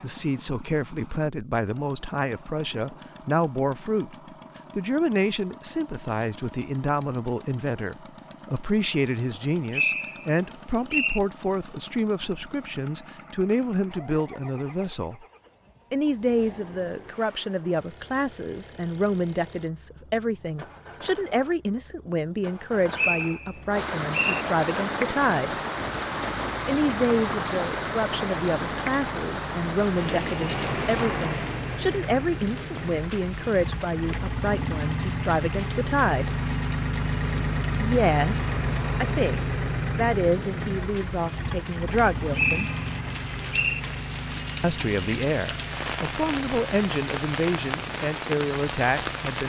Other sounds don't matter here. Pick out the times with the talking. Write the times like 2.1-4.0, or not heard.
0.0-4.2, 4.8-15.2, 15.9-25.6, 26.6-36.3, 37.8-42.7, 44.6-49.4.